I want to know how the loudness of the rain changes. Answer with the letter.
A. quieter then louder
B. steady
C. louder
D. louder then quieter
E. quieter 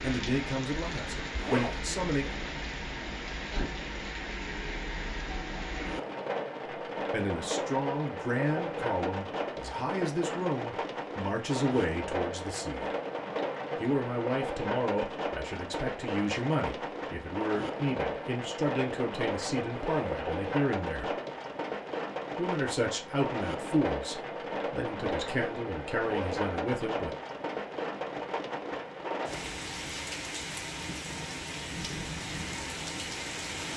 B.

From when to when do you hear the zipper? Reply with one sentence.
The zipper can be heard from 1.4 to 1.8 s, from 19.7 to 20.1 s and from 26.0 to 26.4 s.